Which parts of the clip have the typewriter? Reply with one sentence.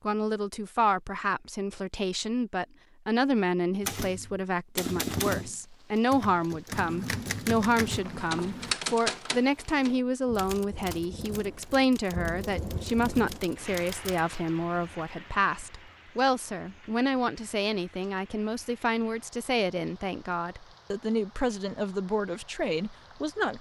You can hear the typewriter from 3.8 to 14.2 s.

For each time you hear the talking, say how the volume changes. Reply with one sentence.
You can hear the talking from 0.1 to 23.5 s, at a steady volume.